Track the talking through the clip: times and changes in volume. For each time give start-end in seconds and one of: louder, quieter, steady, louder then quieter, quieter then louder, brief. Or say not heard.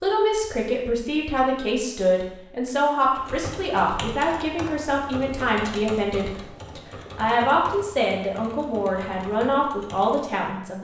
0.0-10.7 steady.